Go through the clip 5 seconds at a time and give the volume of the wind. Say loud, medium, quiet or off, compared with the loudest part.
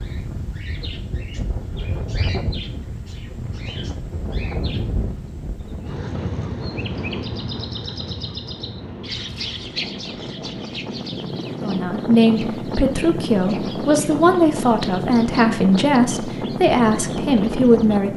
medium, medium, loud, loud.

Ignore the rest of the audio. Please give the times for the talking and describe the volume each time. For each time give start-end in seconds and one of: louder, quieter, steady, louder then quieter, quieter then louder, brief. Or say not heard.
11.6-18.1 steady.